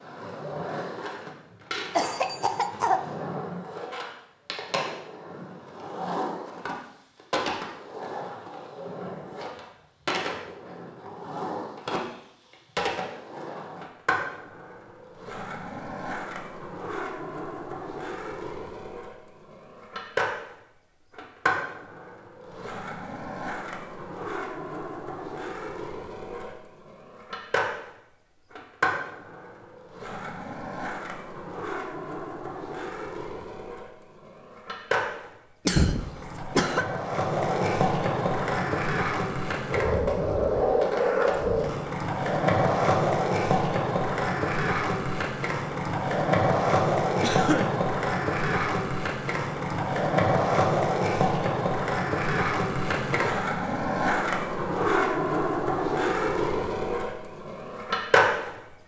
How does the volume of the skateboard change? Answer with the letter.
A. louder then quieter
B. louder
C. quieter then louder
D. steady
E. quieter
B.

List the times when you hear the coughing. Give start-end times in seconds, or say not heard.
1.9-3.1, 35.6-36.9, 47.2-47.8.